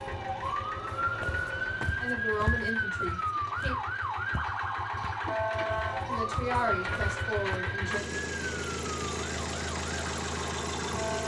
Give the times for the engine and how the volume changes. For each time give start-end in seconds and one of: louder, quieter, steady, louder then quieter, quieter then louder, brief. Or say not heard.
0.0-11.2 louder.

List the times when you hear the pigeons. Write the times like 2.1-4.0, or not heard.
not heard.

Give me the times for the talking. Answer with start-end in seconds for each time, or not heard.
2.0-3.8, 6.0-8.1.